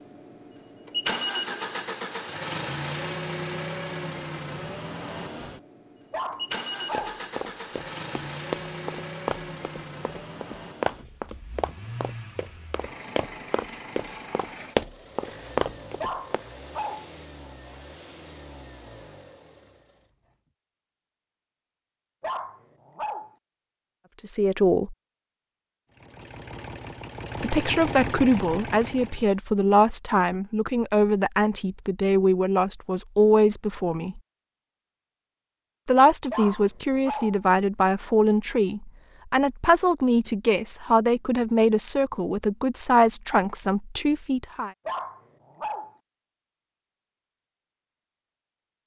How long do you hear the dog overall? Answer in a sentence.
The dog can be heard for 6 seconds in total.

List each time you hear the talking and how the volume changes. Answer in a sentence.
The talking can be heard briefly from 24.2 to 24.9 s; from 27.4 to 34.2 s, at a steady volume; and from 35.9 to 44.7 s, at a steady volume.